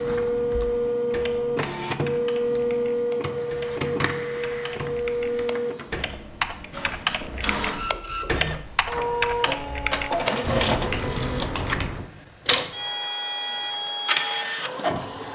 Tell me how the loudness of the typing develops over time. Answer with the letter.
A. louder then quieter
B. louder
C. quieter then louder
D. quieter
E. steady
B.